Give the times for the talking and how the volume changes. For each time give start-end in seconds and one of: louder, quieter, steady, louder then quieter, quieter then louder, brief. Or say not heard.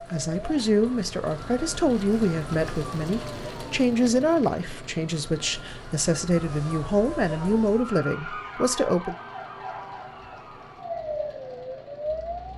0.1-9.2 steady.